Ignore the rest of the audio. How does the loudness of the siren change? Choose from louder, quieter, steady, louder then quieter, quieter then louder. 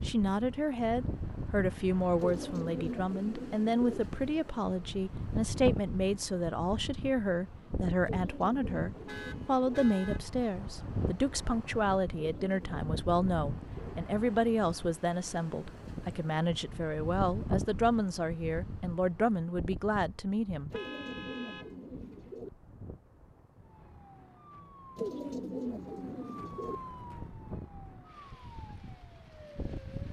louder then quieter.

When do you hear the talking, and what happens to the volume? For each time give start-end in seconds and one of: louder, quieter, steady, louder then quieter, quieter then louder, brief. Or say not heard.
0.0-20.7 steady.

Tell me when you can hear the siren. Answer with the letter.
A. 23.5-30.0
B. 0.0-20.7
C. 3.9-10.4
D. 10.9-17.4
A.